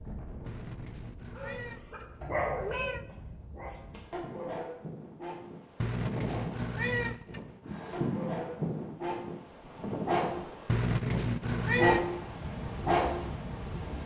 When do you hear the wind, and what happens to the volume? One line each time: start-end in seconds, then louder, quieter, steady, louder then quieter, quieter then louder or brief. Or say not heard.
0.0-14.0 louder.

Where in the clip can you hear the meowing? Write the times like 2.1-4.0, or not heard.
0.5-3.0, 5.8-7.5, 10.7-12.1.